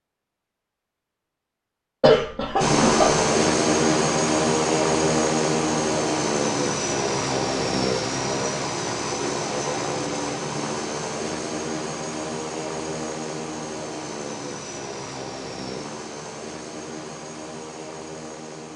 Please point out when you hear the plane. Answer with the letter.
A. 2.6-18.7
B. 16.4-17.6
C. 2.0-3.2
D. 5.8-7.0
A.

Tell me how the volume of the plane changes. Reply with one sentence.
The volume of the plane goes down.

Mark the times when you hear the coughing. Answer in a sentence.
The coughing can be heard from 2.0 to 3.2 s.